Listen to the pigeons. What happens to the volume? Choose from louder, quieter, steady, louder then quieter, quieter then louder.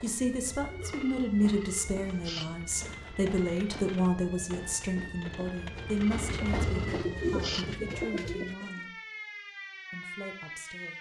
louder.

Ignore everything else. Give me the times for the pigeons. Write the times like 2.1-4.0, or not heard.
1.9-8.9.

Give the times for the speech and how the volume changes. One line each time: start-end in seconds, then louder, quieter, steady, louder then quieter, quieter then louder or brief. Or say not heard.
0.0-8.9 quieter
9.9-10.9 brief.